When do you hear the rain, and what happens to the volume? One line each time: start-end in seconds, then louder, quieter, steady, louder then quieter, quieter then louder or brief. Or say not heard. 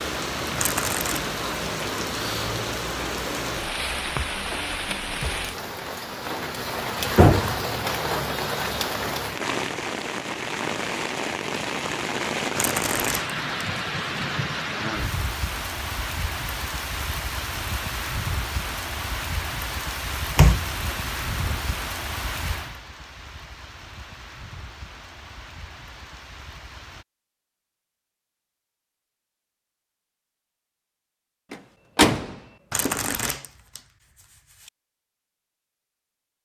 0.0-27.1 quieter.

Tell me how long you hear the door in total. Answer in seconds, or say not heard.
4 s.